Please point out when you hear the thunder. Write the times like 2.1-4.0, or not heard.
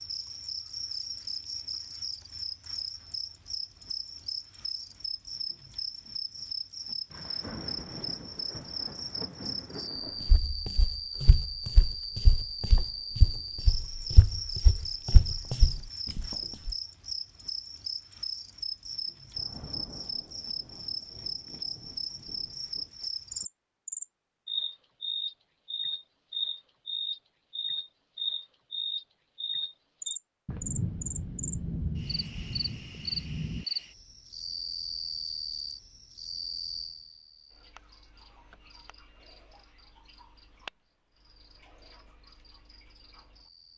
7.1-10.4, 19.4-22.9, 30.4-33.6.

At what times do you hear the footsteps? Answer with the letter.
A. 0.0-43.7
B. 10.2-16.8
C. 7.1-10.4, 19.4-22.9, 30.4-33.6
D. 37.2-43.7
B.